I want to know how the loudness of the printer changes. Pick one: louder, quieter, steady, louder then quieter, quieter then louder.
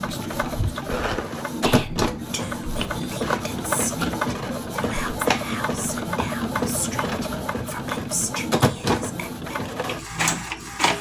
steady.